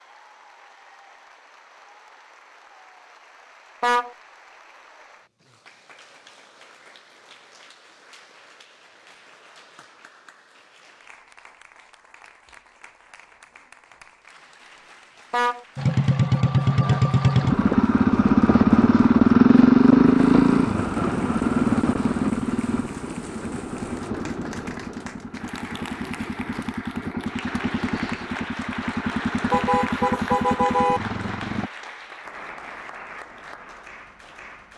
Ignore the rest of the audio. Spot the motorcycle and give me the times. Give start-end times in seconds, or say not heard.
15.8-31.7.